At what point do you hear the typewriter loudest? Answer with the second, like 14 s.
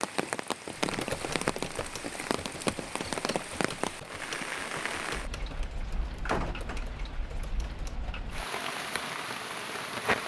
1 s.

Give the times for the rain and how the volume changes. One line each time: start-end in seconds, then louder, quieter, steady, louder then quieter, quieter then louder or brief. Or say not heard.
0.0-10.2 quieter then louder.